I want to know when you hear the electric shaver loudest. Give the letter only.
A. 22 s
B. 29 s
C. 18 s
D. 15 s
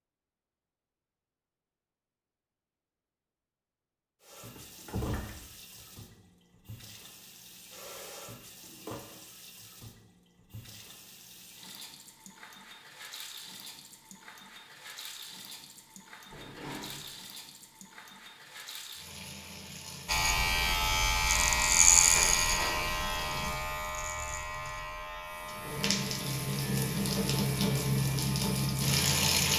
A.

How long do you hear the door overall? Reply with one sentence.
The door can be heard for 4 seconds in total.